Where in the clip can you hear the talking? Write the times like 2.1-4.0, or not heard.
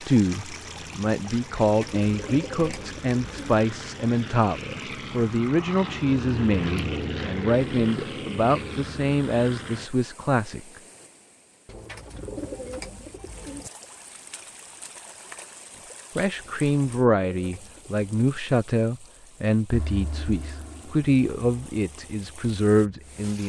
0.0-10.6, 16.1-23.4.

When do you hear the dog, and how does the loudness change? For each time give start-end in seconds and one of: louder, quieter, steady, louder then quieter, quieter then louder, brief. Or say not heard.
not heard.